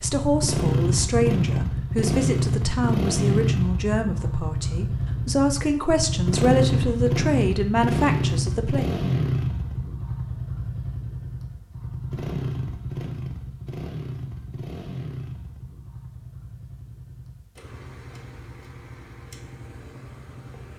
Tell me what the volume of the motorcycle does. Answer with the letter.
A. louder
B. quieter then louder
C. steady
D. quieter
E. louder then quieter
D.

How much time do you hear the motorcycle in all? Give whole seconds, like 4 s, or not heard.
21 s.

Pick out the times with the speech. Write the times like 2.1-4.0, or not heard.
0.0-8.9.